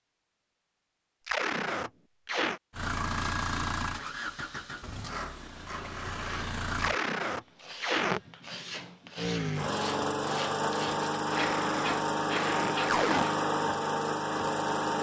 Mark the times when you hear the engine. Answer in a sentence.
The engine can be heard from 2.7 to 7.0 s and from 9.2 to 14.9 s.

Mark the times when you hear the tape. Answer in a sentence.
You can hear the tape from 1.2 to 2.6 s, from 6.8 to 8.2 s and from 11.3 to 13.2 s.